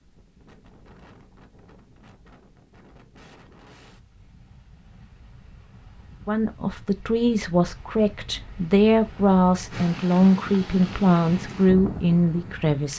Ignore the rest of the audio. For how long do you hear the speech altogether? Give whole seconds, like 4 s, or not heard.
7 s.